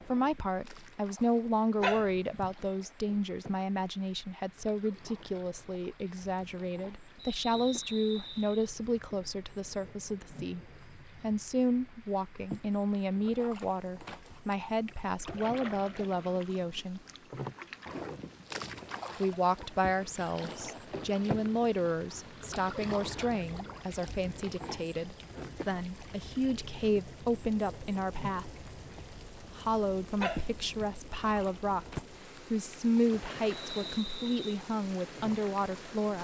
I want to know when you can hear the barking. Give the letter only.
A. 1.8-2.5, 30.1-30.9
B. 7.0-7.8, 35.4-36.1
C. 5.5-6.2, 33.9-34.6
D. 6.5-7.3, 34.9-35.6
A.